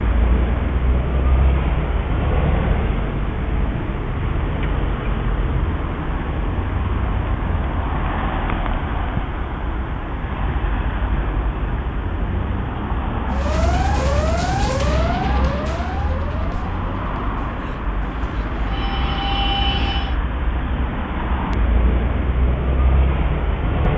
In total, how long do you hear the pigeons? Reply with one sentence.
The pigeons can't be heard in this clip.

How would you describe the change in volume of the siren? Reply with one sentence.
The loudness of the siren goes down, then up.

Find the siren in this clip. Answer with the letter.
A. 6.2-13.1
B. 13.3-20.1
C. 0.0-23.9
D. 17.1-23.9
B.